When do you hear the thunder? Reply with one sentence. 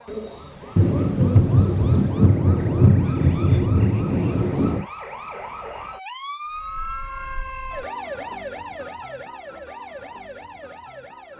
The thunder can be heard from 0.8 to 4.8 s.